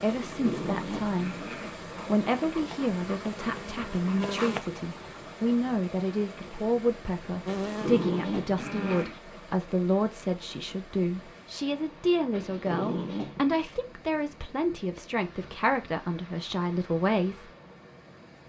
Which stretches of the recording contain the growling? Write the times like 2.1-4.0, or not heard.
0.2-1.8, 7.5-9.2, 12.3-13.6.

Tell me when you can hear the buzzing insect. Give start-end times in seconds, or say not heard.
1.9-4.6, 7.5-9.1.